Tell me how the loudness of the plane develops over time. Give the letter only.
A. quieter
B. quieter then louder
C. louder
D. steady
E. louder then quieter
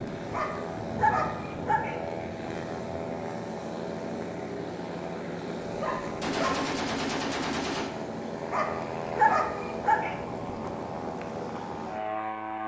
D.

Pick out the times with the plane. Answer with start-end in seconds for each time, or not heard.
0.0-12.6.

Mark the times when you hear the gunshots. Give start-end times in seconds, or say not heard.
6.2-7.9.